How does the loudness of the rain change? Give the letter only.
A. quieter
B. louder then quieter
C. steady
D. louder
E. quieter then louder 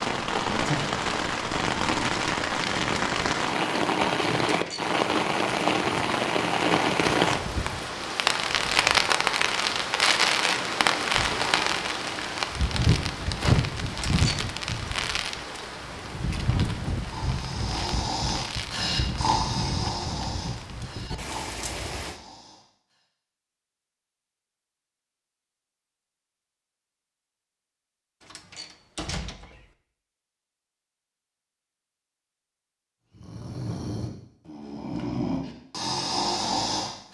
A.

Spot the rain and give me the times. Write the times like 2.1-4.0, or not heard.
0.0-22.2.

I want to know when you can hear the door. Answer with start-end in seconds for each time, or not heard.
4.5-5.0, 13.9-14.4, 28.2-29.7.